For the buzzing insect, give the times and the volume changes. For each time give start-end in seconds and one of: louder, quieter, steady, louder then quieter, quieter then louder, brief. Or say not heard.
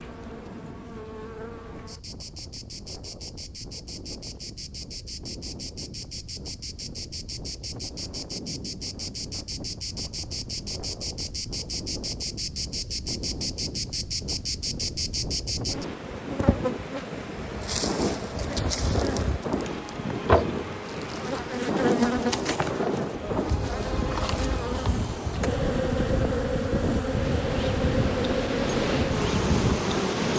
0.0-30.3 louder.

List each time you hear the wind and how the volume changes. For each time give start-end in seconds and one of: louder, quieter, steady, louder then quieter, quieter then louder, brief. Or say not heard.
0.0-30.3 louder.